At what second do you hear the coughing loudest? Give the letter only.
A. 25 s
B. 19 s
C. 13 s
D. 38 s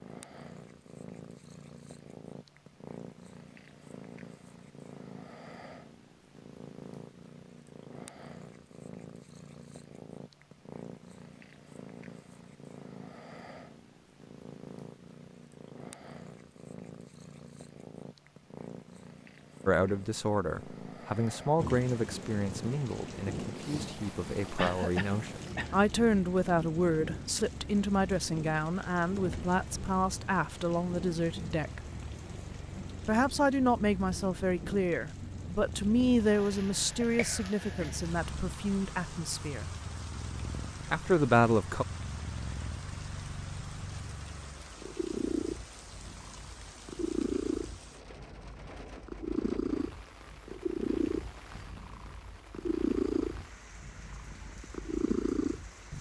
A.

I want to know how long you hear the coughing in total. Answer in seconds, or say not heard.
2 s.